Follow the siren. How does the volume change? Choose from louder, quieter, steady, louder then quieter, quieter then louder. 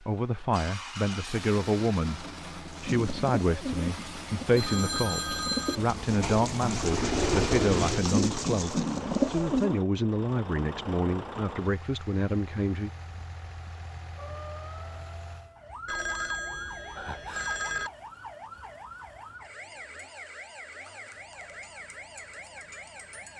steady.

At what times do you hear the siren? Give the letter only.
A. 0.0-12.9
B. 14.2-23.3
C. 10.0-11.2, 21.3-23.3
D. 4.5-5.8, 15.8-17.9
B.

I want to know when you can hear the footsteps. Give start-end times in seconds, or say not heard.
not heard.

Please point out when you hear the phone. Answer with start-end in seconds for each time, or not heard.
4.5-5.8, 15.8-17.9.